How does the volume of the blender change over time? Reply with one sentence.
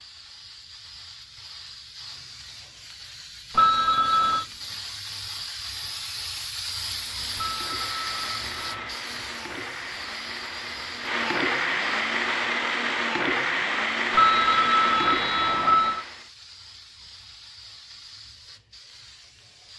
The loudness of the blender goes up.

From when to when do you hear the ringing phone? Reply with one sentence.
You can hear the ringing phone from 3.5 to 4.5 s, from 7.3 to 8.9 s and from 14.1 to 16.1 s.